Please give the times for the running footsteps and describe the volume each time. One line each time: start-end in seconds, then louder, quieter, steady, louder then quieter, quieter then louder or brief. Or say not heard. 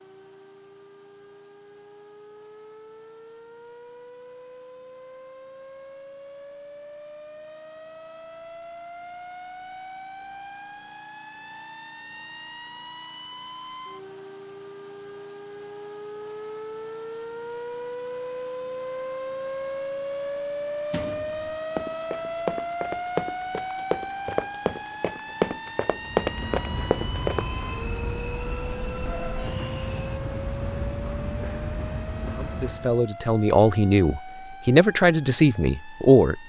20.9-27.4 louder.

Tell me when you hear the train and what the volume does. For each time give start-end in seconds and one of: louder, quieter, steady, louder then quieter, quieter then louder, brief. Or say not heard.
25.9-33.0 steady.